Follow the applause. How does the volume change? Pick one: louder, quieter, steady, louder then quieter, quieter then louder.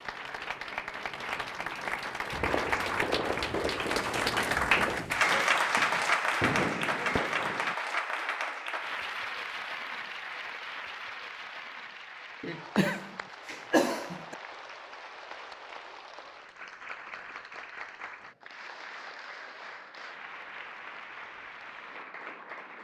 quieter.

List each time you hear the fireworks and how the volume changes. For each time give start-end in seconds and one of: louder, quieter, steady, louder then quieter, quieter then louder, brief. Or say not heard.
2.3-7.8 quieter then louder.